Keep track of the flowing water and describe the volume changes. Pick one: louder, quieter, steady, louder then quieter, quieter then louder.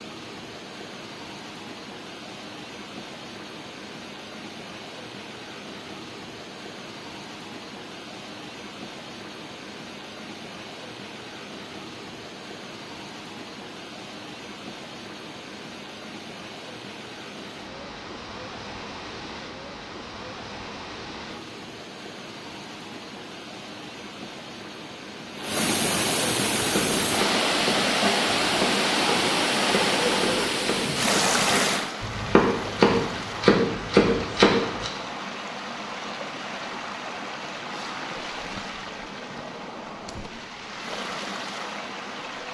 louder then quieter.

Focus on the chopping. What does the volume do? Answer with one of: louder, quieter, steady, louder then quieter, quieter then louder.
louder.